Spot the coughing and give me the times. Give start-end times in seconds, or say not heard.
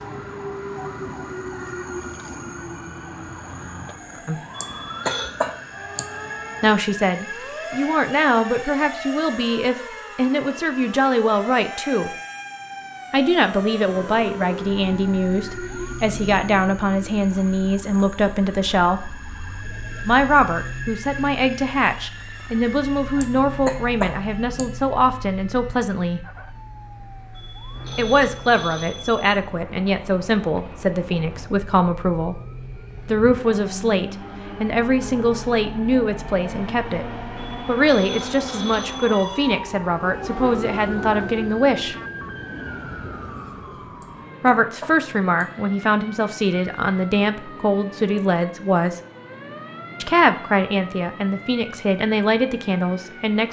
4.6-6.0, 23.2-24.6, 44.0-45.5.